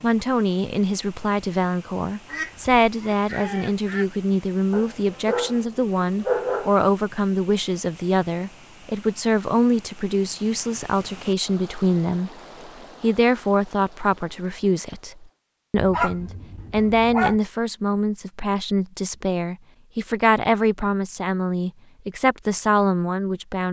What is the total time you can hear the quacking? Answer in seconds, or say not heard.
2 s.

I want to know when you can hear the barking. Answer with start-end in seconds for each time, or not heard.
4.7-6.7, 15.8-17.4.